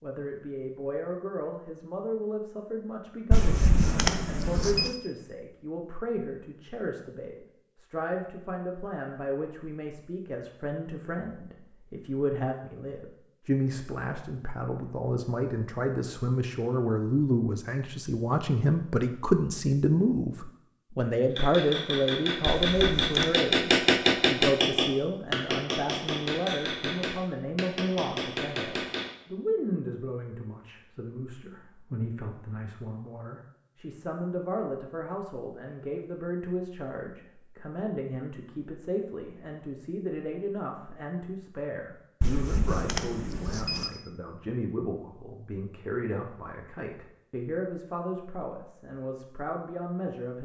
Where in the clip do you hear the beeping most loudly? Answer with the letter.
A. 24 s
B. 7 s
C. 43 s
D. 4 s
D.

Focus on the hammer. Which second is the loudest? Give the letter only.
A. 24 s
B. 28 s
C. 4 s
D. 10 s
A.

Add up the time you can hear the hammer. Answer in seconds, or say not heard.
8 s.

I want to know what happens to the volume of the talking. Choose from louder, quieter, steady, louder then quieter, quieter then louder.
louder then quieter.